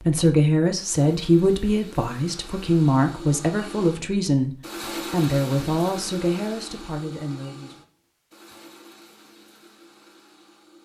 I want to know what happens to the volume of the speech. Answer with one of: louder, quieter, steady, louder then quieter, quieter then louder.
quieter.